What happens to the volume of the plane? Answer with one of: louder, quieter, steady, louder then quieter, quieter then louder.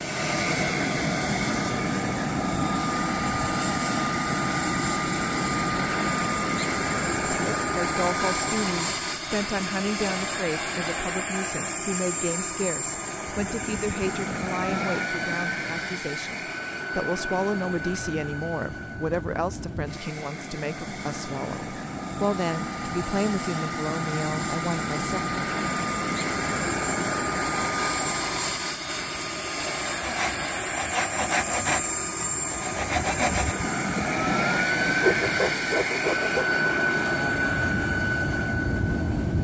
quieter then louder.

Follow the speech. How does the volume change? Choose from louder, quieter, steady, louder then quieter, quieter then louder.
steady.